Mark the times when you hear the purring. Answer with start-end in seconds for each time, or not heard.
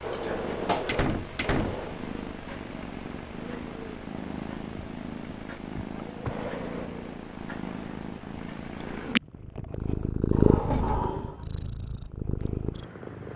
0.0-13.3.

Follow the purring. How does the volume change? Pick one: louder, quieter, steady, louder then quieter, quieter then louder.
louder.